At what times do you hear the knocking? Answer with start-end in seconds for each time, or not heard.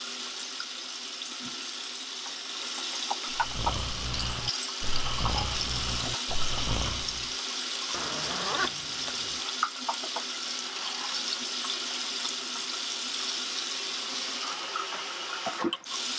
not heard.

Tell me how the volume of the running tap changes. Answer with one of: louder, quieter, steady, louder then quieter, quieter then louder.
steady.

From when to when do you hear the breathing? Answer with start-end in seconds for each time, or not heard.
3.3-7.3.